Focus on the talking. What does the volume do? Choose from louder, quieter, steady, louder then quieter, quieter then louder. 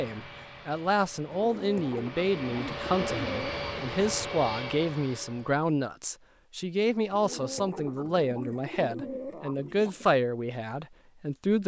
steady.